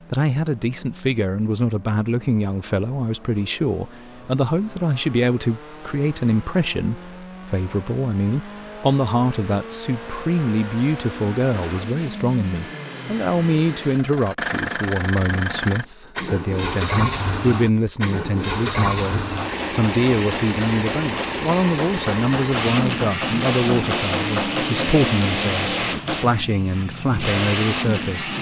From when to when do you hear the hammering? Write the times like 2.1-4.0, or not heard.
19.1-26.2.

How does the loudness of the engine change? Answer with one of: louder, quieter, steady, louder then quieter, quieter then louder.
louder.